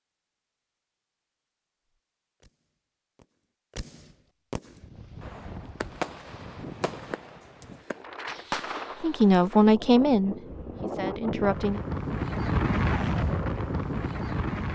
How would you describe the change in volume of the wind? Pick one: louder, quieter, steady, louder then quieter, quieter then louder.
louder.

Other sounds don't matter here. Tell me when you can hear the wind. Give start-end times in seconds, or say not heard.
4.7-14.7.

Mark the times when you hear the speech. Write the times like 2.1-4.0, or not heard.
9.0-11.8.